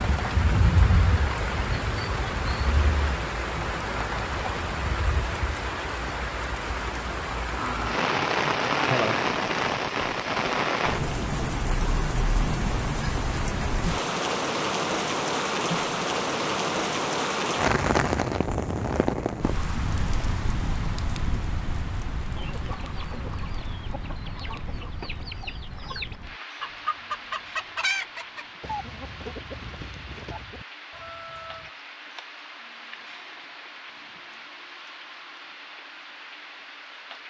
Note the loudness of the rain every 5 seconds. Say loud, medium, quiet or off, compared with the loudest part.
loud, loud, loud, loud, medium, quiet, quiet, quiet.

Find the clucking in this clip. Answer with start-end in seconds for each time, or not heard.
22.4-31.7.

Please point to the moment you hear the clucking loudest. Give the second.
28 s.